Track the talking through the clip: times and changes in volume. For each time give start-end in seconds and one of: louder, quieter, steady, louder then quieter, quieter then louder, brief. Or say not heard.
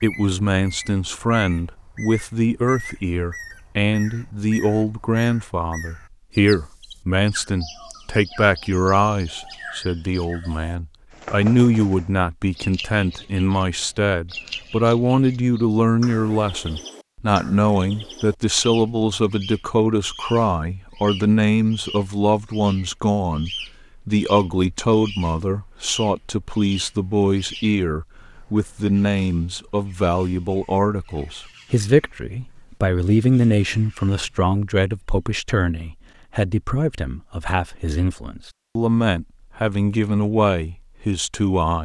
0.0-41.7 steady.